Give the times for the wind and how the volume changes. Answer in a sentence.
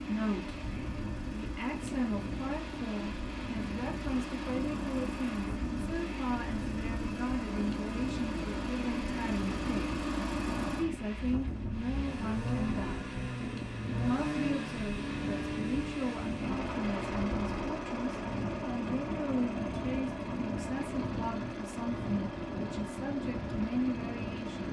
The wind can be heard from 0.0 to 24.6 s, at a steady volume.